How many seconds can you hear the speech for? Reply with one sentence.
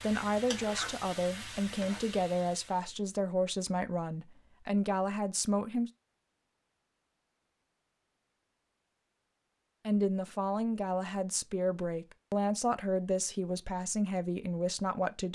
The speech can be heard for 11 seconds in total.